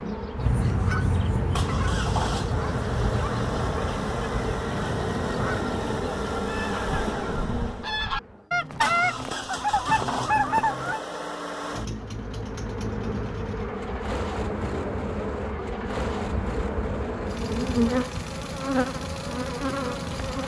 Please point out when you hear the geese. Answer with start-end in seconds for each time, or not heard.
0.3-11.0.